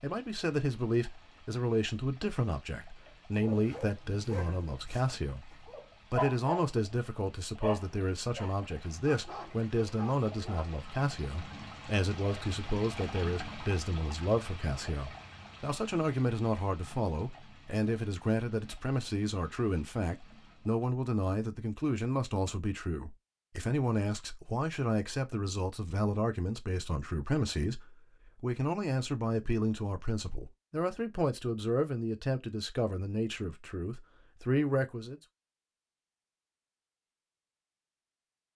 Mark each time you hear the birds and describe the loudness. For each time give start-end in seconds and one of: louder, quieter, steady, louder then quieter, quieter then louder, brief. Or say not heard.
not heard.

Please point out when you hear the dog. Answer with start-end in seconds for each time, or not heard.
3.4-6.8, 7.6-10.7.